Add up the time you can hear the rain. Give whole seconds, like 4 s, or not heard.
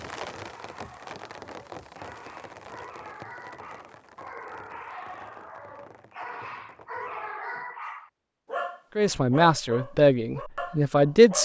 7 s.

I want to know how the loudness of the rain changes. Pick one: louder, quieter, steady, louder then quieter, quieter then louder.
quieter.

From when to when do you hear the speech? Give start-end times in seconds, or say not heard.
8.9-11.4.